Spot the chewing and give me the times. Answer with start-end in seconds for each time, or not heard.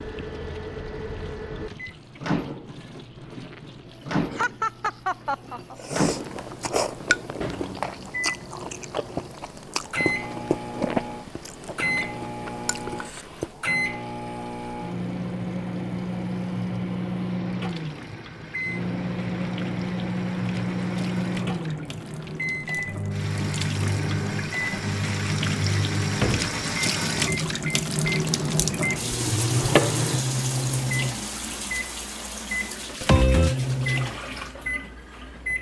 5.8-13.8.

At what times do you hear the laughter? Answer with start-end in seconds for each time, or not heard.
4.3-5.8.